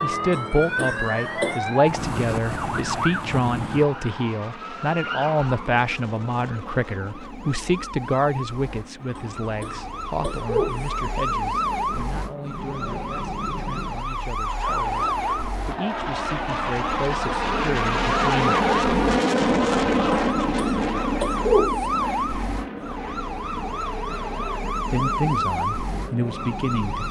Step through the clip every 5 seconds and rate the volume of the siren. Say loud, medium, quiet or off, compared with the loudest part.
loud, medium, loud, loud, loud, loud.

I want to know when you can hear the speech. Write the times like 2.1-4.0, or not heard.
0.0-18.6, 24.9-27.0.